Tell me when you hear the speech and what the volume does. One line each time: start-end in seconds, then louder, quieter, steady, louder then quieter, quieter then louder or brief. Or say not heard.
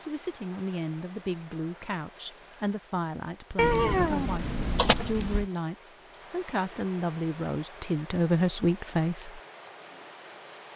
0.0-9.4 louder.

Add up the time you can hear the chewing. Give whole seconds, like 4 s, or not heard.
not heard.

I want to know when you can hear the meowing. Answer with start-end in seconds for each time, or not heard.
3.5-5.5.